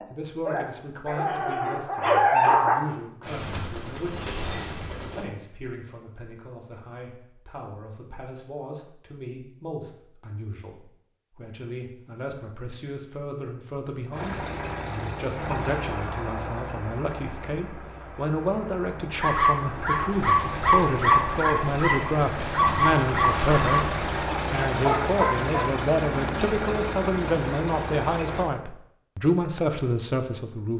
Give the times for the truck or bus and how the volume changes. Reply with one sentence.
The truck or bus can be heard from 14.1 to 28.5 s, getting quieter then louder.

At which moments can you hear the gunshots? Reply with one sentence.
You can hear the gunshots from 3.2 to 5.2 s and from 22.4 to 24.4 s.